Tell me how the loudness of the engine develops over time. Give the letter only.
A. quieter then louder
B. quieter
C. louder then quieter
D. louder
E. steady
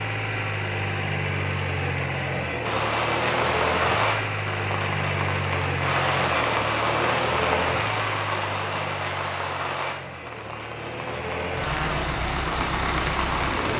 A.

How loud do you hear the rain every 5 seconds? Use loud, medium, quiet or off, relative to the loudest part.
loud, loud, medium.